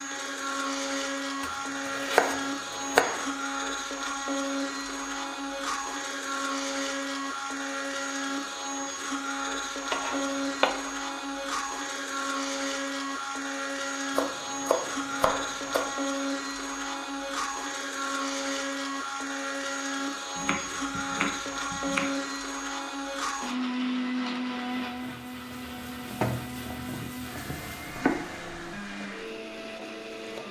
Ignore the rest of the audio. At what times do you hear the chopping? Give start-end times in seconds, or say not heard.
1.4-3.3, 9.9-10.7, 14.2-15.9, 20.4-22.1, 26.6-28.1.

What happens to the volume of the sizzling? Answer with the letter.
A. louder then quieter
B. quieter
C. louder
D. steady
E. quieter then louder
A.